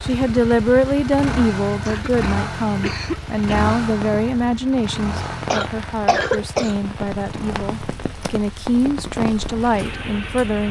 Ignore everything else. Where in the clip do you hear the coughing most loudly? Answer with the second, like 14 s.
6 s.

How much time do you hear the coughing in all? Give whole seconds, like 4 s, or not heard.
3 s.